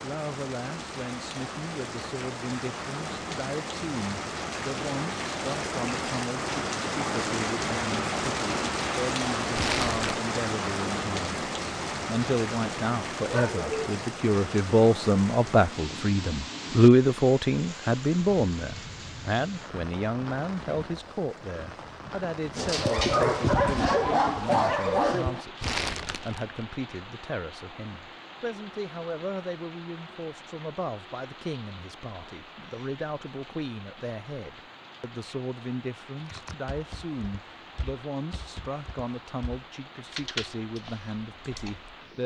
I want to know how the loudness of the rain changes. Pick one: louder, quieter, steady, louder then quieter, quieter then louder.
quieter.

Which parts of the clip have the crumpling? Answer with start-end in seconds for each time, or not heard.
9.6-10.2, 25.6-26.6.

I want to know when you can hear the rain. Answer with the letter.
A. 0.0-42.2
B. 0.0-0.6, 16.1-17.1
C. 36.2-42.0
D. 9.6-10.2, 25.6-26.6
A.